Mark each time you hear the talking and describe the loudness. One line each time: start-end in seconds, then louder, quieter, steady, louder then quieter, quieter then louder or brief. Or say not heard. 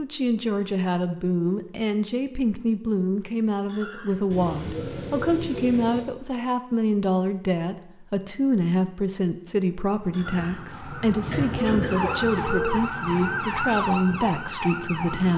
0.0-15.3 steady.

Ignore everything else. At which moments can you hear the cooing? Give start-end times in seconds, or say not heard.
4.3-6.0, 11.6-13.6.